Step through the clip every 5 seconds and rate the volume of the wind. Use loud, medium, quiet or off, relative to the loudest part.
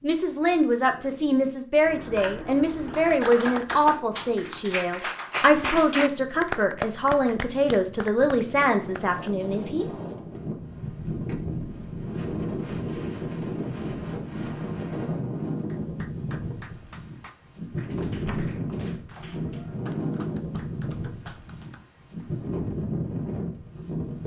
quiet, medium, loud, loud, loud.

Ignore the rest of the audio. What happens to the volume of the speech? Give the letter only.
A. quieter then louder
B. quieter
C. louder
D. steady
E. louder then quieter
D.